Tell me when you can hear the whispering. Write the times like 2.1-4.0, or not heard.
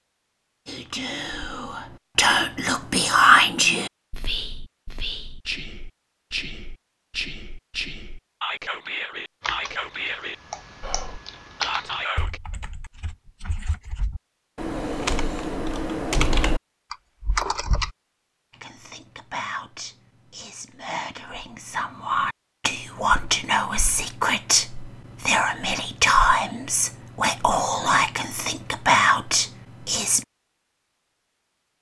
0.7-12.4, 18.5-30.2.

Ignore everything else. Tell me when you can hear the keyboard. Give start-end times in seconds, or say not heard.
9.4-17.9.